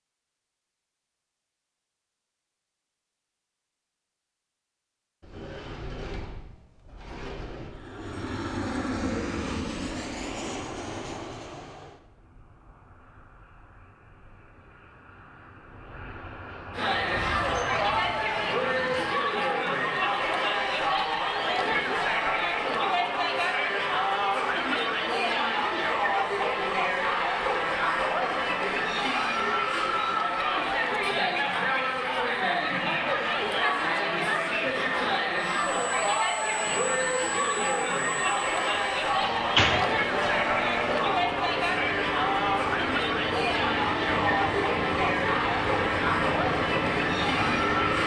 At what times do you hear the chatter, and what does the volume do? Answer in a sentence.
The chatter can be heard from 16.7 to 48.0 s, at a steady volume.